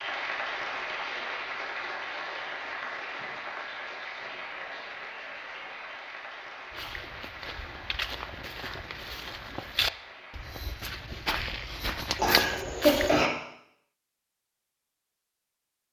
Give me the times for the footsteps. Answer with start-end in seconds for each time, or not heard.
6.7-13.2.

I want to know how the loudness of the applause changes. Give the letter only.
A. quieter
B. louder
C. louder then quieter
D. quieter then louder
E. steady
A.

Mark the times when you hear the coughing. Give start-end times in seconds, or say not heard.
12.2-13.3.